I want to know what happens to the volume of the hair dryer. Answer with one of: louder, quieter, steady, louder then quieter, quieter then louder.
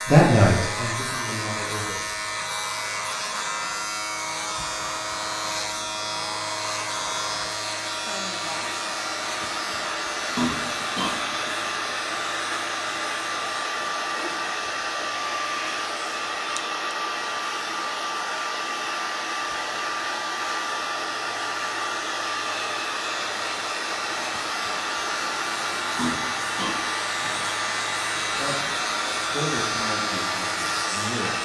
louder.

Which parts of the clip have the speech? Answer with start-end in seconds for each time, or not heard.
0.1-2.0, 28.2-31.4.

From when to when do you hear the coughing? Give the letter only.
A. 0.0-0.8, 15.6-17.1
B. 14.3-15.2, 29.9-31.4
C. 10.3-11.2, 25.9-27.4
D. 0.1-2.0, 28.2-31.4
C.